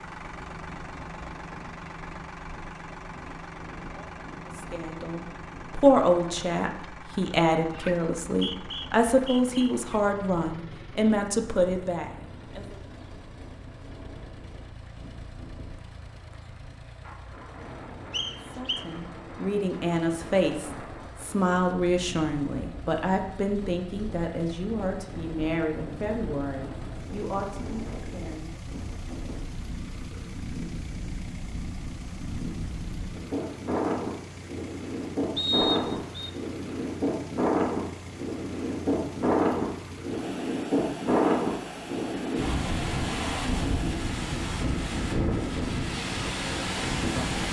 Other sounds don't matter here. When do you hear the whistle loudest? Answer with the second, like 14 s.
36 s.